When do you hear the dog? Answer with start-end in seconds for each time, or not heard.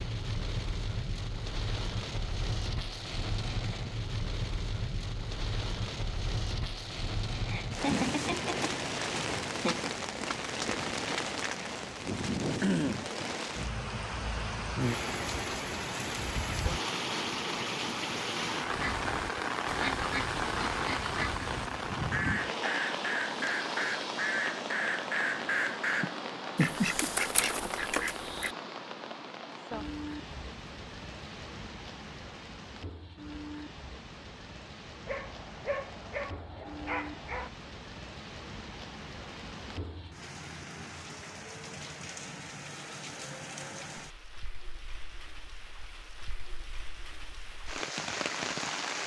35.0-37.5.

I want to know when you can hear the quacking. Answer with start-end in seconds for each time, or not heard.
18.7-28.6.